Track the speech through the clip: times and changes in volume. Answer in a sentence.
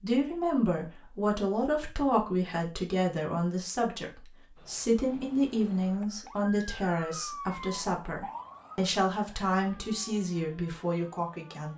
The speech can be heard from 0.0 to 11.7 s, at a steady volume.